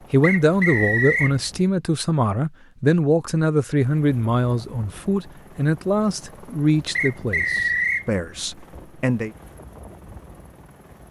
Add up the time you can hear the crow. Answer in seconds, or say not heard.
not heard.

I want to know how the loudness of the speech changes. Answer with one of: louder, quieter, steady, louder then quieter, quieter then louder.
quieter.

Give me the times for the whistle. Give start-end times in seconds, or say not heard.
0.2-1.4, 7.0-8.1.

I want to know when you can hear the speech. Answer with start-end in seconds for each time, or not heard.
0.1-9.3.